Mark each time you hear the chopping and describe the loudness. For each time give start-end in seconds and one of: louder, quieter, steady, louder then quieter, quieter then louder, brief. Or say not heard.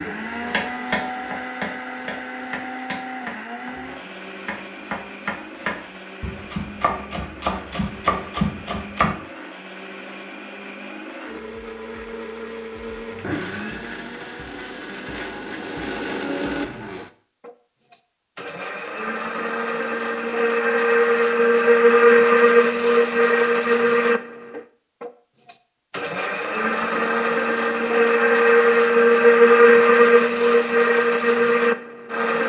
0.5-9.2 quieter then louder.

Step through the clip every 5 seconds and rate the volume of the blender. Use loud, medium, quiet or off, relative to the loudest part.
quiet, quiet, quiet, quiet, loud, loud, loud.